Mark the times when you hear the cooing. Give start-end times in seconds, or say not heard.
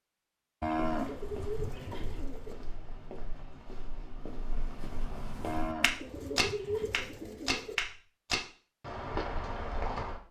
0.9-2.5, 6.0-7.8.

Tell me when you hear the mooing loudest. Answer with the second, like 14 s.
1 s.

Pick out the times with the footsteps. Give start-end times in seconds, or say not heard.
0.7-10.2.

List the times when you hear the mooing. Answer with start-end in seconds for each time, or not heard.
0.6-2.2, 5.4-7.0.